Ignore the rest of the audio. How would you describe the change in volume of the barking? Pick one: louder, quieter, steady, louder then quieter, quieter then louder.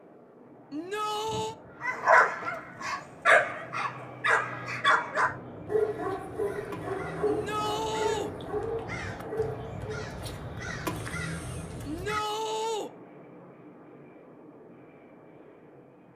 quieter.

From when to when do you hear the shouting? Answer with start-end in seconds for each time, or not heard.
0.7-1.6, 7.2-8.3, 11.8-12.9.